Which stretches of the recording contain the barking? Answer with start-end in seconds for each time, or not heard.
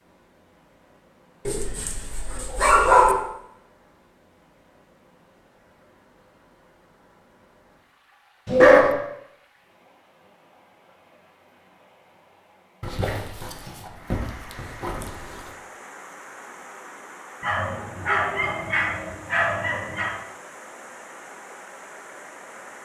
1.4-3.1, 8.4-8.9, 12.8-15.5, 17.4-20.1.